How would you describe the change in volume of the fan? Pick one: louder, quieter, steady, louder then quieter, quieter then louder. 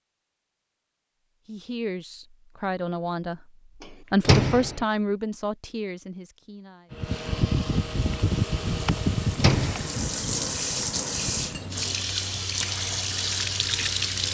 quieter.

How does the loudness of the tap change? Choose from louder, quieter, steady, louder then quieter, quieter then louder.
louder.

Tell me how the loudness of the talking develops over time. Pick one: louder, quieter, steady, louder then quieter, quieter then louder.
louder then quieter.